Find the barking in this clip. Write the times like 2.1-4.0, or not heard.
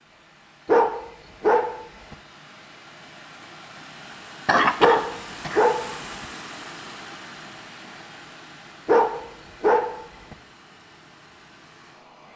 0.7-2.1, 4.8-6.2, 8.8-10.3.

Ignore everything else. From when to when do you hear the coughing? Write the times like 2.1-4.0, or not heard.
4.5-5.7.